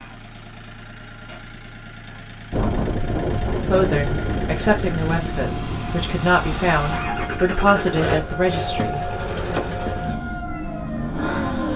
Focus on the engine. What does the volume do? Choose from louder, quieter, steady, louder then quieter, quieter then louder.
louder.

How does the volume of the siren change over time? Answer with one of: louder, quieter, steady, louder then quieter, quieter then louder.
quieter.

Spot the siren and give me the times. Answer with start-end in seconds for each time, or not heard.
2.5-11.7.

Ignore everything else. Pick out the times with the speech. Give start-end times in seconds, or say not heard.
3.7-9.1.